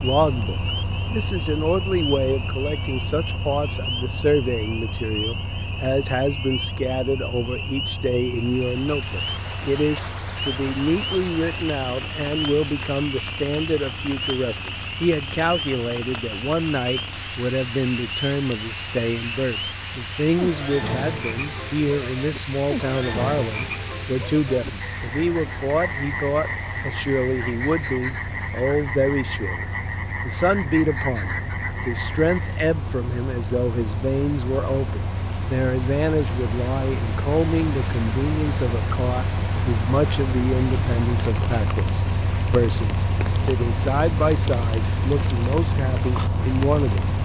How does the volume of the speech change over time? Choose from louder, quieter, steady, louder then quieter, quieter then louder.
steady.